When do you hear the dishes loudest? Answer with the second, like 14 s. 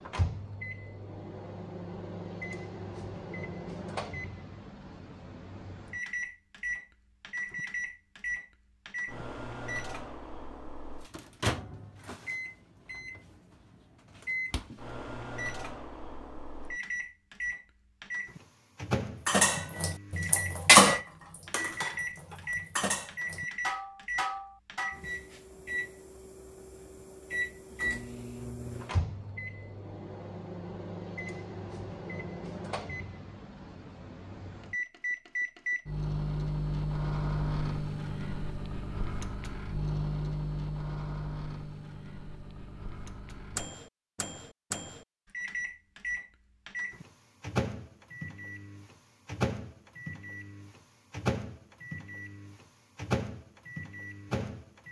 21 s.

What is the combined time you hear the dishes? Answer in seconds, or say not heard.
6 s.